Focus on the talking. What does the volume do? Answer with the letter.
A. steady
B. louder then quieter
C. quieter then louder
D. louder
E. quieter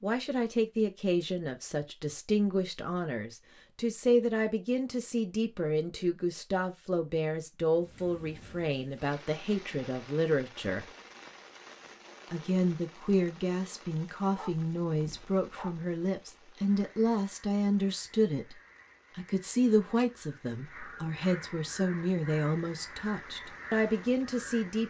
A.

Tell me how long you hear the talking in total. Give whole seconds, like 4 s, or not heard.
23 s.